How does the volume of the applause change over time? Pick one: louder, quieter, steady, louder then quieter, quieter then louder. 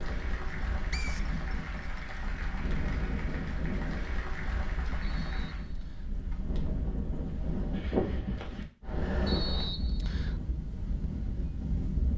steady.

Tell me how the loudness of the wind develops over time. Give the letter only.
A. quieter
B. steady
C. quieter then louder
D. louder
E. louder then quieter
E.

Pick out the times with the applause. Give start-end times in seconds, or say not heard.
0.0-5.7.